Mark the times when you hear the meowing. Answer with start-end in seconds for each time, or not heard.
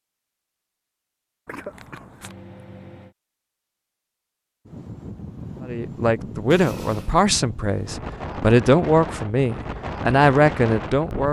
2.2-3.1.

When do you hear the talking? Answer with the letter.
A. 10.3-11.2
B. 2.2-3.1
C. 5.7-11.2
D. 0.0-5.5
C.